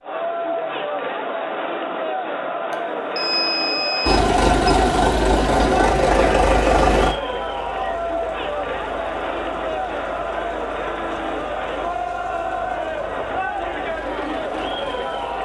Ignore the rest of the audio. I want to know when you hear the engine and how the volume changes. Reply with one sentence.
The engine can be heard from 4.0 to 15.4 s, getting quieter.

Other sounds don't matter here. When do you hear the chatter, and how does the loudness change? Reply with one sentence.
The chatter can be heard from 0.0 to 15.4 s, at a steady volume.